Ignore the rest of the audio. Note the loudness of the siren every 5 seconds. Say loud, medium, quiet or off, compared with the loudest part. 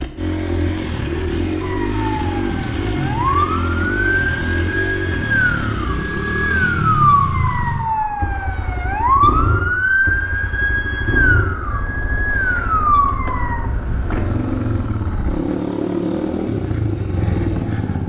medium, loud, loud, off.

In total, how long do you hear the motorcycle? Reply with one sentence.
The motorcycle can be heard for 18 seconds in total.